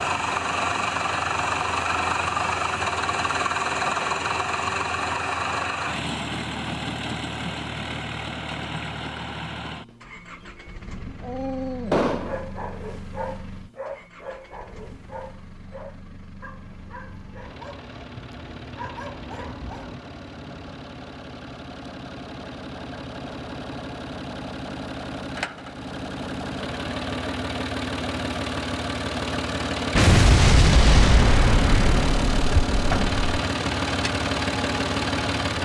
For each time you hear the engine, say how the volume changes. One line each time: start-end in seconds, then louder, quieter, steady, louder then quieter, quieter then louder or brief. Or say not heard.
0.0-35.6 quieter then louder.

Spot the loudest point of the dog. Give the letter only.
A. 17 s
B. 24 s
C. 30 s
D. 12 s
D.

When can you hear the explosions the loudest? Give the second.
30 s.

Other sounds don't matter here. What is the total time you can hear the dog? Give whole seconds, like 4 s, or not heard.
9 s.